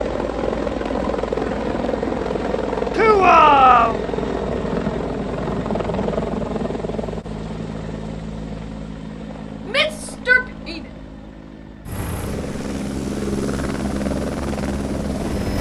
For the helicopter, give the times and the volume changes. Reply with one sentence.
The helicopter can be heard from 0.0 to 15.5 s, getting quieter then louder.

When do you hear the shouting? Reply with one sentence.
You can hear the shouting from 3.0 to 4.0 s and from 9.7 to 10.8 s.